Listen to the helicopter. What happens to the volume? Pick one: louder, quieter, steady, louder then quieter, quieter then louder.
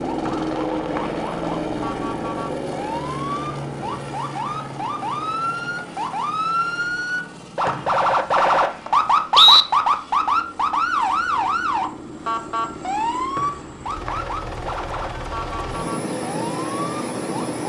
quieter then louder.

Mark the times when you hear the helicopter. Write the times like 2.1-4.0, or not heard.
0.0-17.6.